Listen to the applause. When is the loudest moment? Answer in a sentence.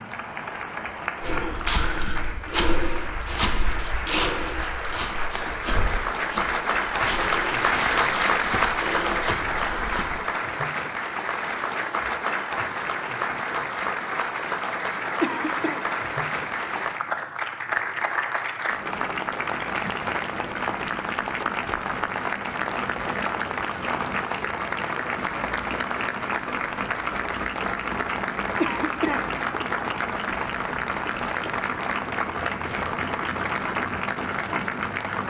The volume of the applause peaks at 8 seconds.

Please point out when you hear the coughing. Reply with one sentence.
You can hear the coughing from 15.2 to 15.8 s and from 28.6 to 29.4 s.